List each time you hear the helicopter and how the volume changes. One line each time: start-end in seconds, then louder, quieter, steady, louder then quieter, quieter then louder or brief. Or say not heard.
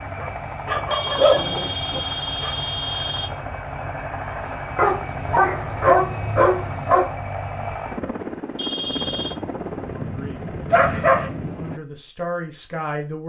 0.0-11.8 steady.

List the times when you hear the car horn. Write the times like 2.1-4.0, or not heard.
0.9-3.4, 8.6-9.4.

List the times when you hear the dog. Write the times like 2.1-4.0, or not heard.
0.2-2.5, 4.8-7.0, 10.7-11.3.